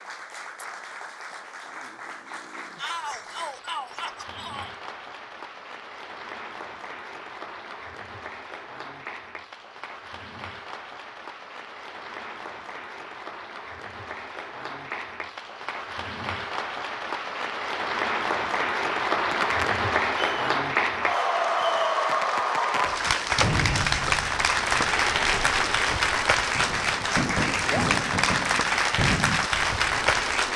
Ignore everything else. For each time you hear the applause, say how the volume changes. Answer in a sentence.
You can hear the applause from 0.0 to 30.5 s, getting louder.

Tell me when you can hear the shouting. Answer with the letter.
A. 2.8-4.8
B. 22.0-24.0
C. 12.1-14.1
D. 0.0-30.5
A.